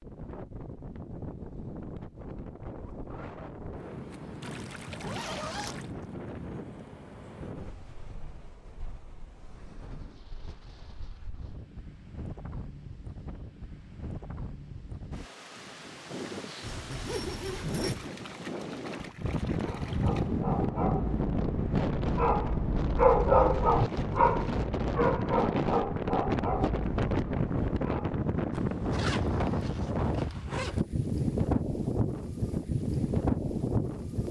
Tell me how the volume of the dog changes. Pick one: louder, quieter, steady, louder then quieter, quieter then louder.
louder then quieter.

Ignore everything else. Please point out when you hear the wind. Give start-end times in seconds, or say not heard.
0.0-34.2.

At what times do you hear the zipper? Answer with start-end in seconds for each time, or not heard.
4.9-5.8, 16.6-18.1, 28.5-30.9.